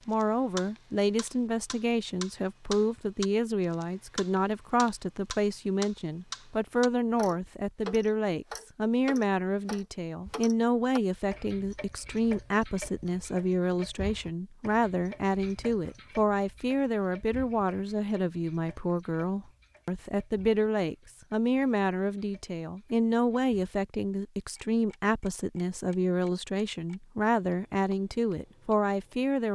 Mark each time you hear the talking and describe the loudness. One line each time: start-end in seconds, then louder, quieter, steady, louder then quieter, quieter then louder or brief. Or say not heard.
0.1-29.4 steady.